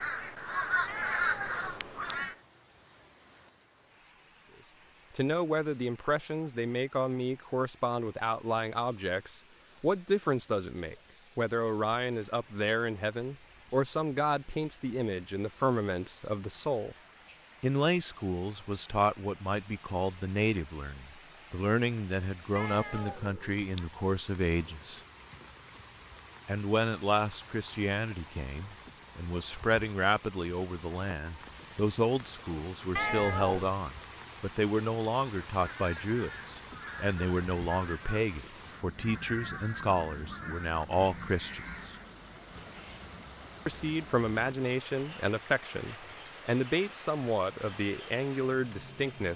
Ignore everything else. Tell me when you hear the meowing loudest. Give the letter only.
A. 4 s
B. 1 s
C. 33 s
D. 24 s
C.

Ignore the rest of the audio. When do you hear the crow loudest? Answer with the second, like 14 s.
1 s.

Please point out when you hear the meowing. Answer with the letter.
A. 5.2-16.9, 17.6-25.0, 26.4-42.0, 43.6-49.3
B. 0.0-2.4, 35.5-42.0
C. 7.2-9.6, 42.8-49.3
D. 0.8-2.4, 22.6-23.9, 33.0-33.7
D.